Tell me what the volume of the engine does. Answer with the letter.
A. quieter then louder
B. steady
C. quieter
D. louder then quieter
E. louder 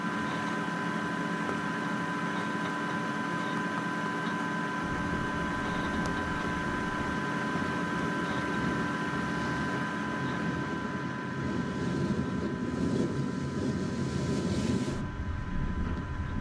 C.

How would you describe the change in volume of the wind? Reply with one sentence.
The volume of the wind goes up.